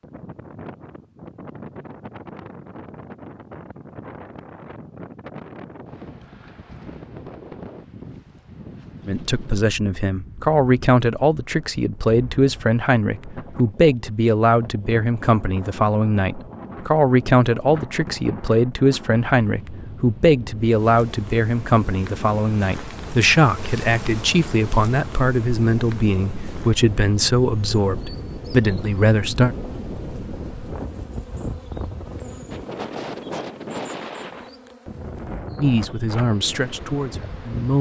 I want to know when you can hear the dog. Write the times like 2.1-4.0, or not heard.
not heard.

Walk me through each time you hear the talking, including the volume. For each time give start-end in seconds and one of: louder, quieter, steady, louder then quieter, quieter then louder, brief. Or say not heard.
9.1-29.6 steady
35.5-37.7 brief.